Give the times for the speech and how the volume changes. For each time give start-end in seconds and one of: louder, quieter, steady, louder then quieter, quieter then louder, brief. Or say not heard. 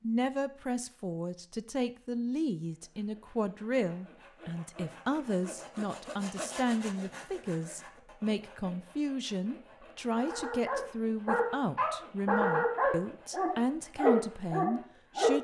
0.0-15.3 steady.